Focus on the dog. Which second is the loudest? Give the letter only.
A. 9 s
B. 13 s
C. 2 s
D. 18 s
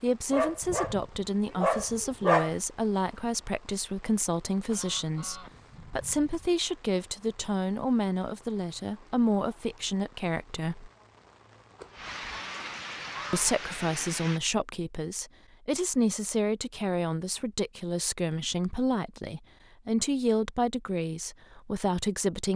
C.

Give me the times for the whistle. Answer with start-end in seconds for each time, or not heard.
not heard.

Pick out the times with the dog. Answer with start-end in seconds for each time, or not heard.
0.3-2.5.